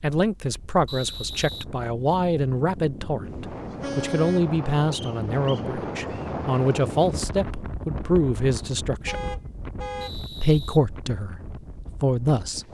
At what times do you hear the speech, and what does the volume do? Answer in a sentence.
You can hear the speech from 0.0 to 9.3 s, at a steady volume; and briefly from 10.4 to 12.6 s.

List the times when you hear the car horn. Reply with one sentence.
You can hear the car horn from 3.2 to 4.5 s and from 9.1 to 10.2 s.